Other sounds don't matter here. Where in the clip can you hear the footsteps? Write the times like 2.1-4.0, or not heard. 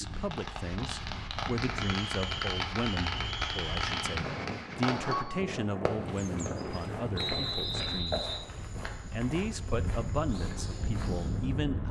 5.9-11.6.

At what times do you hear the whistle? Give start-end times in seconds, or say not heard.
1.8-4.0, 7.2-8.4.